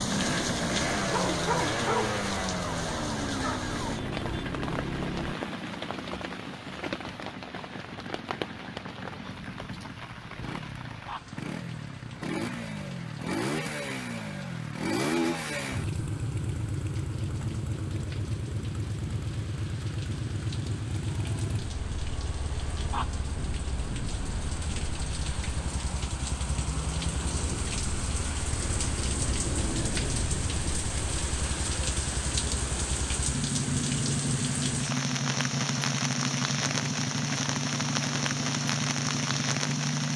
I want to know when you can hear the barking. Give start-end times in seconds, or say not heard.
1.1-2.2.